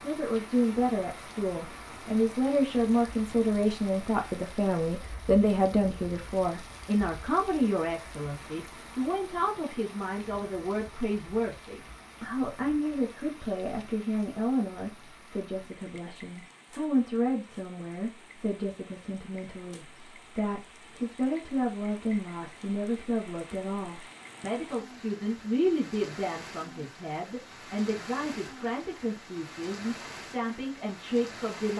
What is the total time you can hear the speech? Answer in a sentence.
You can hear the speech for 32 seconds altogether.